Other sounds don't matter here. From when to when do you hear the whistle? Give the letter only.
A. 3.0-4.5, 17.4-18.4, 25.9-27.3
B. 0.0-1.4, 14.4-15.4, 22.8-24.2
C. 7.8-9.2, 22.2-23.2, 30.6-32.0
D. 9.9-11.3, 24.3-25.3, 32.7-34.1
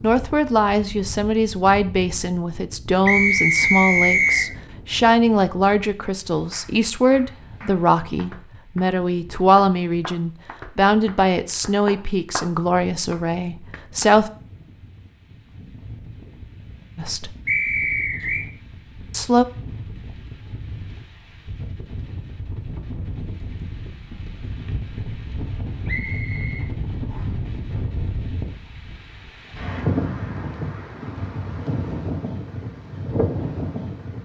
A.